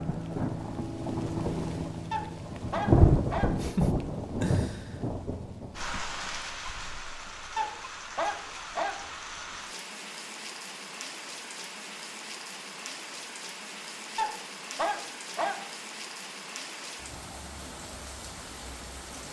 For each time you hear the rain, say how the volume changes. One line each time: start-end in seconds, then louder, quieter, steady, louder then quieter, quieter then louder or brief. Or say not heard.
0.0-19.2 quieter.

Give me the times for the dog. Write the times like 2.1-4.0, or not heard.
2.1-3.6, 7.5-9.1, 14.2-15.7.